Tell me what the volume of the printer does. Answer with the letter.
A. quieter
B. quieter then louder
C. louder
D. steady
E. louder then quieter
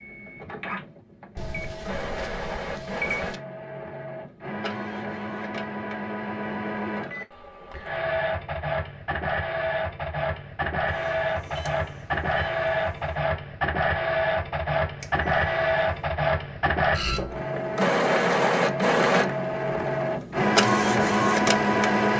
C.